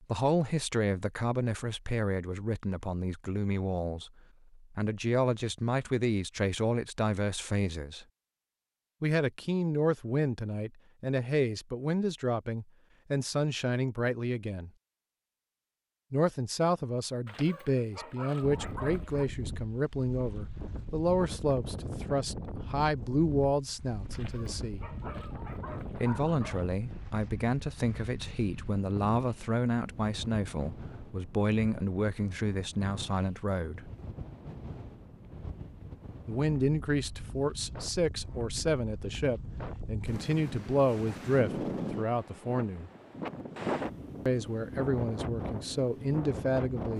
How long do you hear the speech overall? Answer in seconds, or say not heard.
40 s.